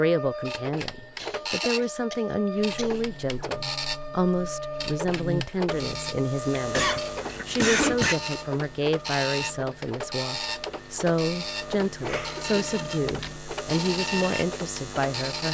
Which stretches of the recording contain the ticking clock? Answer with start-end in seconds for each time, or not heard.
not heard.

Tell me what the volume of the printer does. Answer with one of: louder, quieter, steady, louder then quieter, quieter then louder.
steady.